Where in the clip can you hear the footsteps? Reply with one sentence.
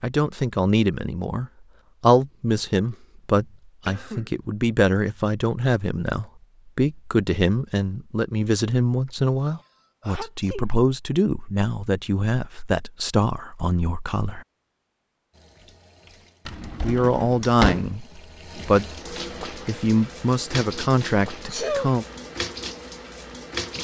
The footsteps can't be heard in this clip.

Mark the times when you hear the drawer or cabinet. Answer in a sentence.
The drawer or cabinet can be heard from 16.4 to 17.9 s.